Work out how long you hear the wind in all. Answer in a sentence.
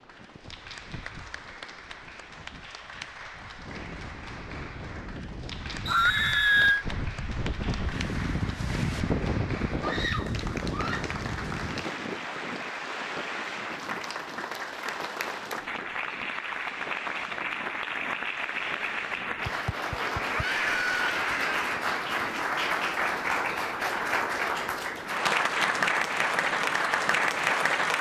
You can hear the wind for 28 seconds altogether.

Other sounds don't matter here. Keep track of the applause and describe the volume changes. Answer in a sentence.
The loudness of the applause goes up.